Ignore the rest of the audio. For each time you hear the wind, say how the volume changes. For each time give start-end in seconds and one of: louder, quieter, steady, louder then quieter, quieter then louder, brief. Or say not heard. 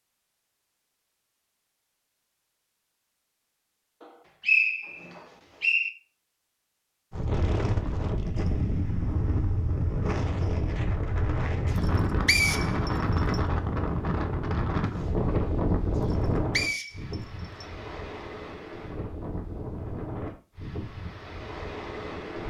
7.1-22.4 quieter.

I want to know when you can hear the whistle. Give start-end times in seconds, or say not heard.
4.0-5.9, 12.2-13.4, 16.1-17.6.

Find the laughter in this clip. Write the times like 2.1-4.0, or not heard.
not heard.